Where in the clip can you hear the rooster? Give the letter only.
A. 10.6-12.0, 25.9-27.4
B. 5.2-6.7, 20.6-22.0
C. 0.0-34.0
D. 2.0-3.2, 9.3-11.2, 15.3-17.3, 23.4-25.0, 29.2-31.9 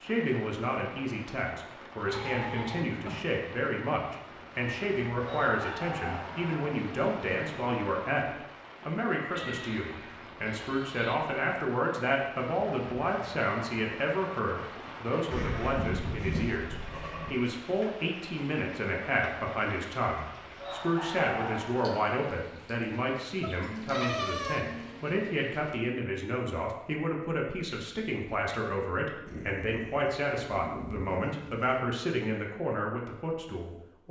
B.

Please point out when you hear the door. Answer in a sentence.
You can't hear the door here.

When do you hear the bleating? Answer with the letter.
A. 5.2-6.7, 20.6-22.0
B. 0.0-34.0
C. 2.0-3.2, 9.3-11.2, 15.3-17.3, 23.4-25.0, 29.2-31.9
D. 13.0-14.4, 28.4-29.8
C.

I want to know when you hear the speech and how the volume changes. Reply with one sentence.
You can hear the speech from 0.0 to 34.0 s, at a steady volume.